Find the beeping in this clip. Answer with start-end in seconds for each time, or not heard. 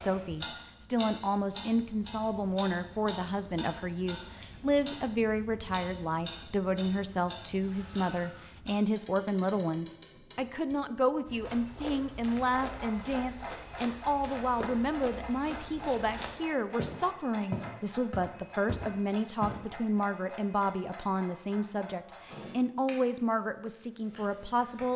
not heard.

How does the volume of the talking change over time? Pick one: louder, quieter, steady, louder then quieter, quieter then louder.
steady.